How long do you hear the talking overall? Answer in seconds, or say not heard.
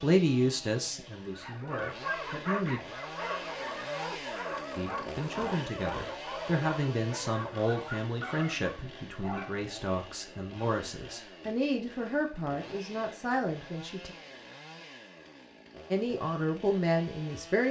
14 s.